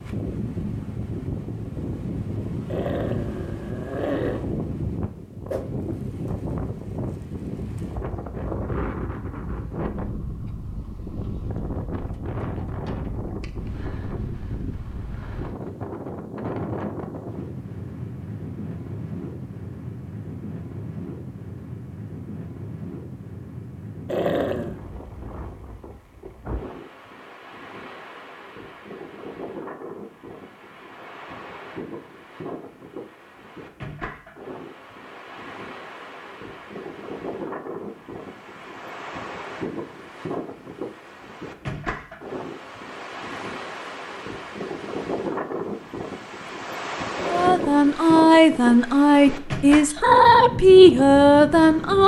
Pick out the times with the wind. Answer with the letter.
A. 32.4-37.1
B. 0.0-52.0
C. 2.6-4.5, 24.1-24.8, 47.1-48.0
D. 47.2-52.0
B.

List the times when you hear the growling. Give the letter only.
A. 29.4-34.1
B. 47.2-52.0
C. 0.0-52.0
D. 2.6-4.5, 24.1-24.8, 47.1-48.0
D.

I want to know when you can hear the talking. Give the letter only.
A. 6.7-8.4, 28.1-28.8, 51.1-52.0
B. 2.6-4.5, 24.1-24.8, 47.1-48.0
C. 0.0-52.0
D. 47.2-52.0
D.